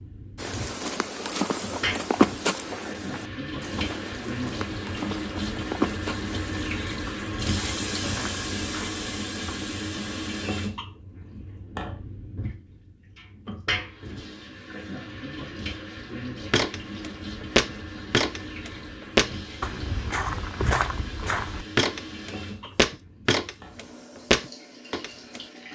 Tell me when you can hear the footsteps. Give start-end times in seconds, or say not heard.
0.3-9.6, 16.5-25.4.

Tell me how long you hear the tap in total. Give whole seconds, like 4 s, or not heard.
26 s.